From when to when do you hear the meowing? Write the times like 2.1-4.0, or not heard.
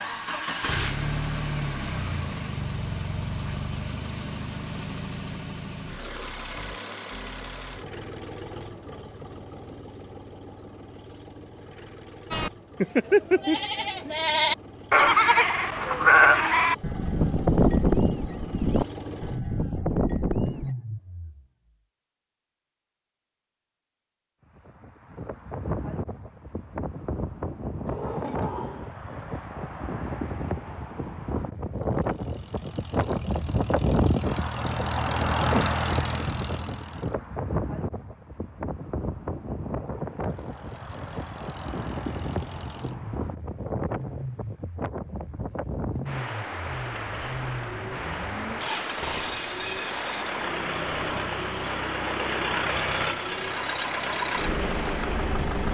not heard.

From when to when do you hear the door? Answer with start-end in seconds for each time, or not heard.
27.9-28.9.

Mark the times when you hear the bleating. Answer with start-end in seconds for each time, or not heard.
12.3-20.8.